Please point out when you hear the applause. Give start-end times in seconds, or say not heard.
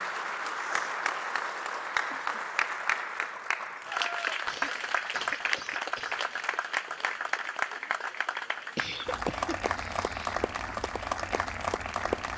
0.0-12.3.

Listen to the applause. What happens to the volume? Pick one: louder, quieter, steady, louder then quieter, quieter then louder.
steady.